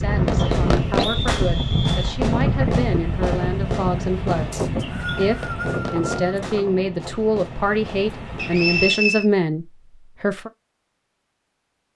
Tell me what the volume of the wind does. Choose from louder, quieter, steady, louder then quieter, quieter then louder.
quieter.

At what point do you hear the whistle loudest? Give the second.
9 s.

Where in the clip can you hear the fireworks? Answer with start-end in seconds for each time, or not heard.
0.2-9.2.